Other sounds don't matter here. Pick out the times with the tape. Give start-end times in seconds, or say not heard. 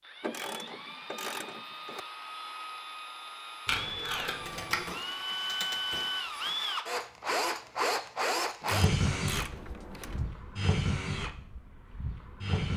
3.6-4.8.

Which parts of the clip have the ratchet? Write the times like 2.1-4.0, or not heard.
0.2-2.0, 4.4-6.7, 8.6-10.4.